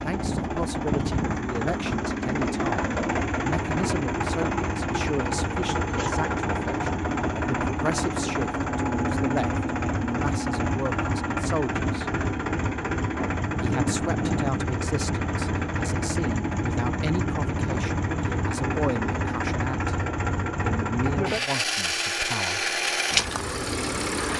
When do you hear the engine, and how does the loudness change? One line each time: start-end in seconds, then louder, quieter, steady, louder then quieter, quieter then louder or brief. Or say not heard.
0.0-24.3 steady.